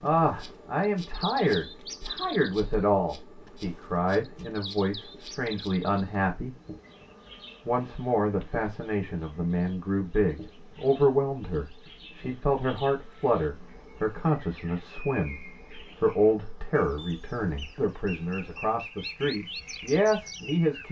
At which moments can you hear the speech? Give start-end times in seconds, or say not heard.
0.0-6.5, 7.7-20.8.